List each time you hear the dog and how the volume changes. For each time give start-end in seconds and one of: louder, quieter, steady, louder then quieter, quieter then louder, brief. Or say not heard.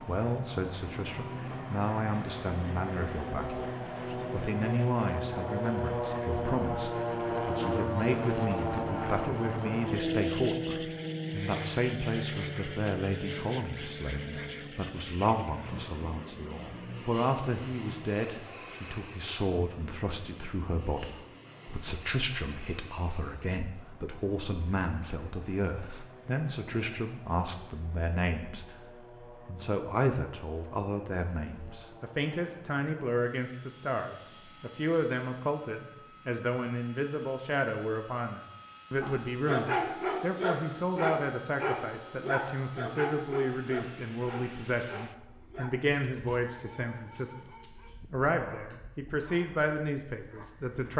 39.0-50.5 quieter.